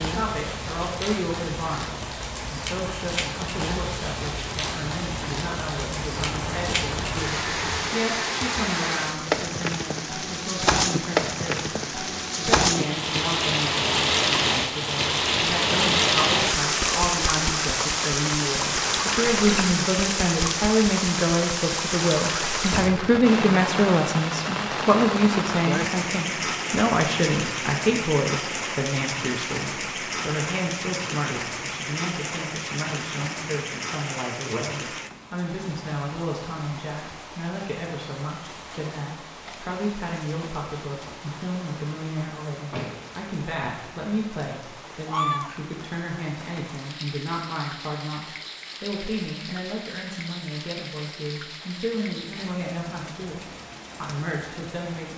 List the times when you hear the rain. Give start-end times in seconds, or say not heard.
0.0-55.1.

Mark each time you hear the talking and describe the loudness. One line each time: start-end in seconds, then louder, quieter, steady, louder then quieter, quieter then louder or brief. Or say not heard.
0.0-55.1 louder then quieter.